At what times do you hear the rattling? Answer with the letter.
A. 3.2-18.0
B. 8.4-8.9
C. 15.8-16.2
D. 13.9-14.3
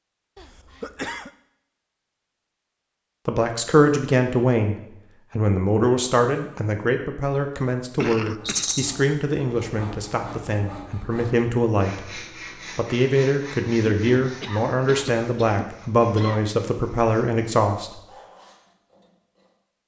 B.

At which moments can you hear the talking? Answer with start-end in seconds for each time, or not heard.
3.2-18.0.